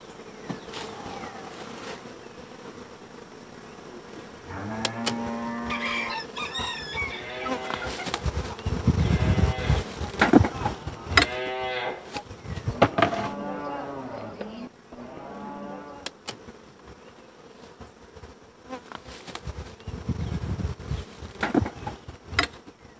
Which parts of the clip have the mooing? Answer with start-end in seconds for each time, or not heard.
3.9-16.1.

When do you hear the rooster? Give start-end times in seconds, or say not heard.
5.7-8.2.